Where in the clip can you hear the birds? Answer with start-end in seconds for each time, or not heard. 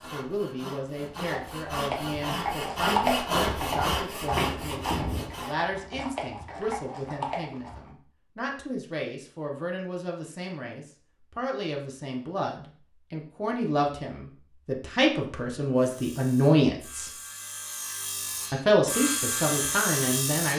not heard.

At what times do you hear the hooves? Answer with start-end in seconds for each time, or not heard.
1.0-7.9.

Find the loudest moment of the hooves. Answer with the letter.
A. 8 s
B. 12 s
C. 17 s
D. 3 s
D.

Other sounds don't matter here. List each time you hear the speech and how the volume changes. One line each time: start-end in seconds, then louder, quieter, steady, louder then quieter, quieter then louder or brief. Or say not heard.
0.1-17.1 louder
18.5-20.5 brief.